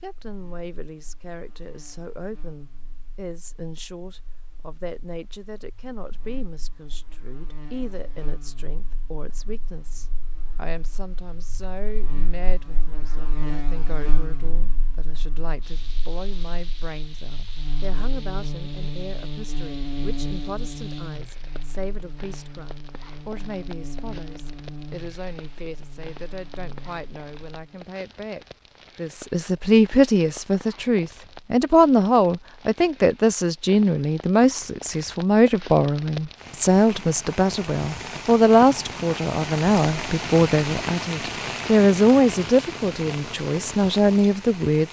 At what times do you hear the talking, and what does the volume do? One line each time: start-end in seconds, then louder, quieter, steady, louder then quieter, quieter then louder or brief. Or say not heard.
0.0-44.8 louder.